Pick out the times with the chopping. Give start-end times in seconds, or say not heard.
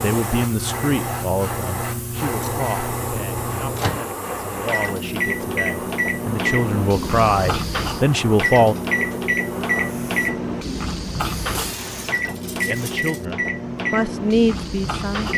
not heard.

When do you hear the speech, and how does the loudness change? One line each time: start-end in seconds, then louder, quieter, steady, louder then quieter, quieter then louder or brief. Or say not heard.
0.0-8.8 quieter then louder
12.6-15.3 brief.